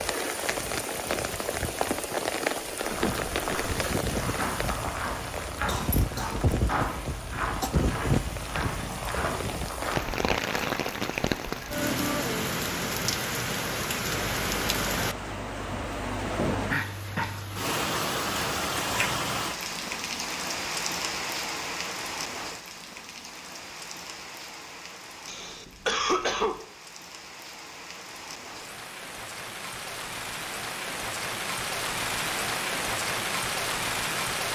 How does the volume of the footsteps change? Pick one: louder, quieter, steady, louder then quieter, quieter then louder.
steady.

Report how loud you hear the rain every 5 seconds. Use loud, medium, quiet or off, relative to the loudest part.
loud, loud, loud, loud, medium, quiet, loud.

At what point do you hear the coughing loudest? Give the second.
26 s.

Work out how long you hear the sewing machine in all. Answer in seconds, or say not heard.
not heard.